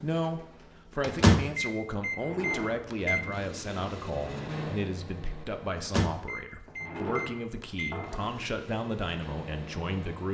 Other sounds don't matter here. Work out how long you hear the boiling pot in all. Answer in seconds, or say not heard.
not heard.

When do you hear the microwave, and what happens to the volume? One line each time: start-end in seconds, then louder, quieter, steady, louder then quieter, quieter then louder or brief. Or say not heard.
1.0-10.2 quieter.